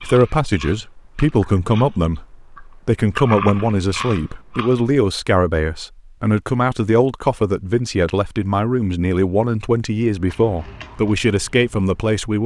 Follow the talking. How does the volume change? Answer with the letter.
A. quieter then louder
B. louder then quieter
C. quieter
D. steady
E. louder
D.